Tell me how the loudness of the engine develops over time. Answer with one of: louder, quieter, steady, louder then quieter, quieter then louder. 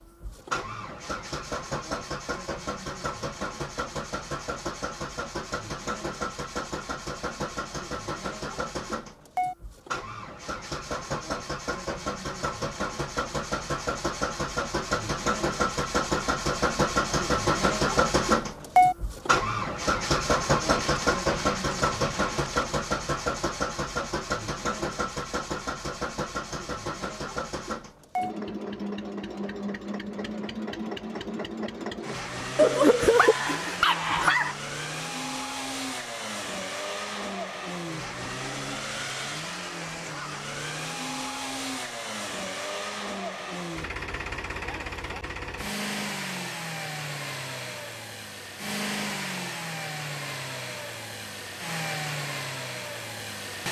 louder then quieter.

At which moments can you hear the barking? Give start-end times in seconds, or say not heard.
32.5-34.5.